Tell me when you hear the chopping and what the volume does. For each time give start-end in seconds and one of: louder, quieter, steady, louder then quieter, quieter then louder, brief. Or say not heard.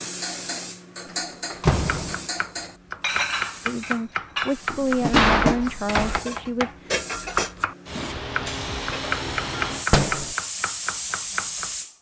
1.7-11.8 steady.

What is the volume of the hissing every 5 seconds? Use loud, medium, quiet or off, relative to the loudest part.
medium, loud, loud.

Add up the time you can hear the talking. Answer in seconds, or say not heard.
3 s.